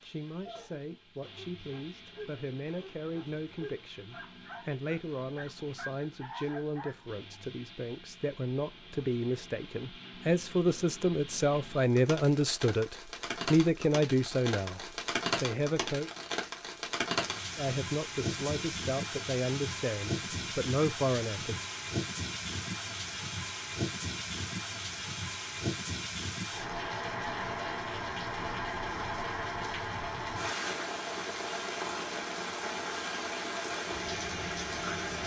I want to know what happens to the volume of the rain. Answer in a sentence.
The loudness of the rain goes up.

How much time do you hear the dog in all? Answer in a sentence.
You can hear the dog for 7 seconds altogether.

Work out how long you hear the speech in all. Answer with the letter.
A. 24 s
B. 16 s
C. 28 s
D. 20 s
D.